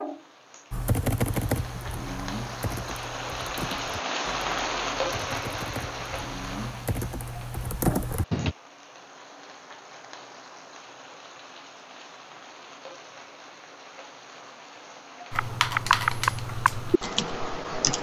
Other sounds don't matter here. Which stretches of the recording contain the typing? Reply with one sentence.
The typing can be heard from 0.7 to 8.6 s and from 15.3 to 17.9 s.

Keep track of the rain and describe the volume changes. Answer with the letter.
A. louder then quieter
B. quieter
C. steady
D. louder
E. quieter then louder
A.